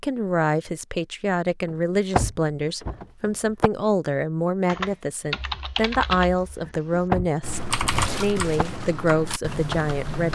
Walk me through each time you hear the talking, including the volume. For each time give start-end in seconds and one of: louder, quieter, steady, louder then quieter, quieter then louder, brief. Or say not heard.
0.0-10.3 steady.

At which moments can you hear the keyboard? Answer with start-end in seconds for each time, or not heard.
4.7-10.3.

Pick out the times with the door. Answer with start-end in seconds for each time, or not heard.
1.7-3.7, 6.7-8.7.